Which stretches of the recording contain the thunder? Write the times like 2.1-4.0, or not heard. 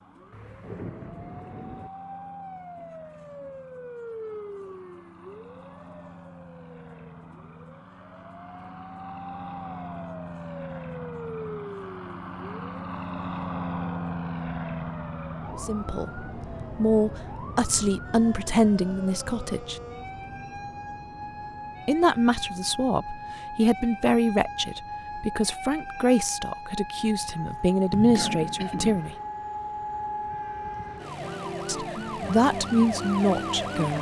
0.3-1.9.